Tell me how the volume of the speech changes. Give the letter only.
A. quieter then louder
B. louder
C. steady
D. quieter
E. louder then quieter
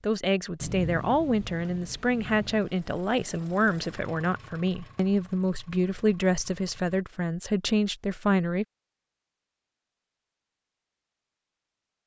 C.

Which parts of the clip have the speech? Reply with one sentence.
The speech can be heard from 0.0 to 8.7 s.